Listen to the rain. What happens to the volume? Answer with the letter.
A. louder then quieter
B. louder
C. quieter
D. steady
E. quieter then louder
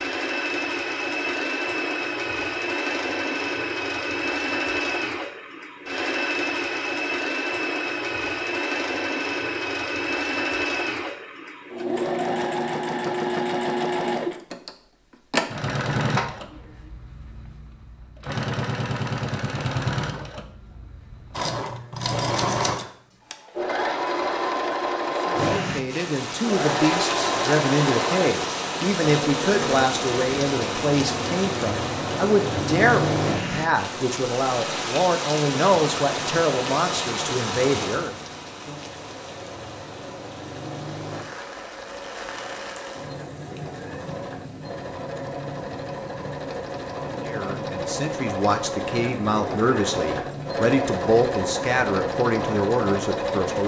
C.